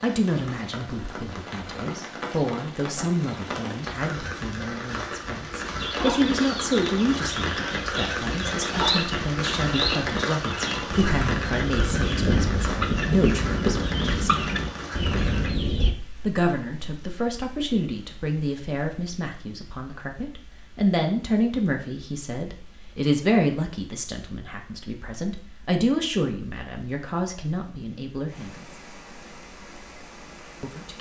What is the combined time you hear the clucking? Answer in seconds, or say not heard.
10 s.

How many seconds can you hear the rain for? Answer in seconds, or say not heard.
31 s.